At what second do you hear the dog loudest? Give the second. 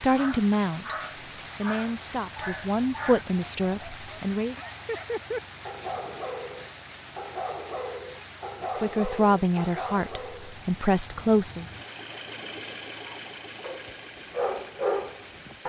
15 s.